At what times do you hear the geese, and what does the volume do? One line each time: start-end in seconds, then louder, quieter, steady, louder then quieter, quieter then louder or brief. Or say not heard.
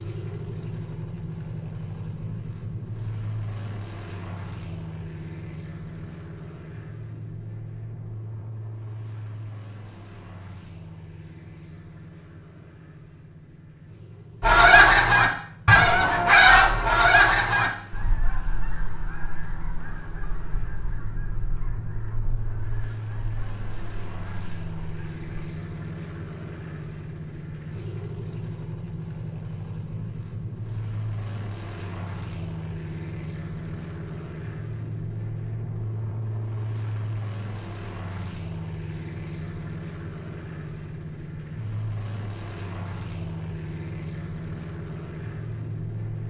14.4-25.4 quieter.